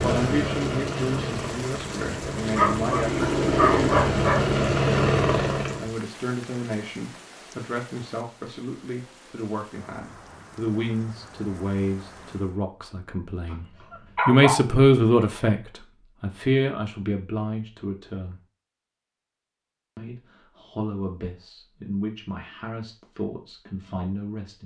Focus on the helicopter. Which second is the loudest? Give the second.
5 s.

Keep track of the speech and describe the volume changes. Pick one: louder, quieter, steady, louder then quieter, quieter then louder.
louder then quieter.